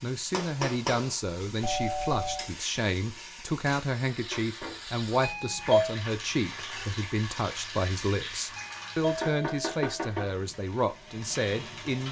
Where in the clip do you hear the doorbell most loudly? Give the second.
6 s.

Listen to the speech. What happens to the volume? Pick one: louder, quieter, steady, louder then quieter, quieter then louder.
steady.